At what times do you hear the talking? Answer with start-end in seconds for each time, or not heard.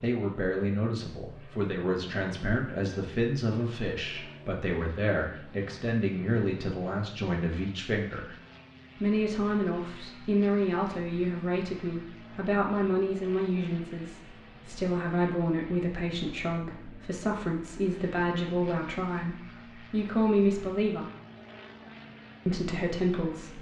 0.0-8.3, 8.9-21.1, 22.4-23.5.